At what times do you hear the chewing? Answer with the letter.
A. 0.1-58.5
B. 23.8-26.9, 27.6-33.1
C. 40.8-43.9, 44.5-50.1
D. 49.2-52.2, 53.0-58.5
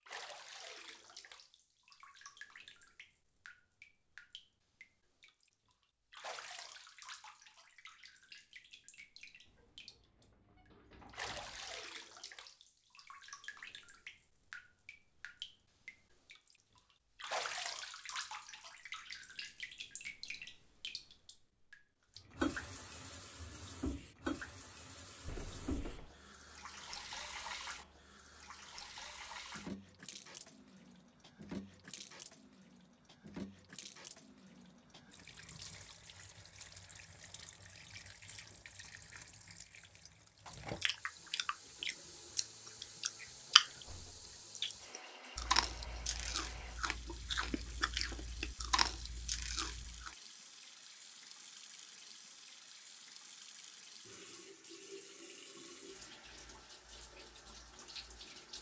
C.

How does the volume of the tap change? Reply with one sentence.
The loudness of the tap goes up, then down.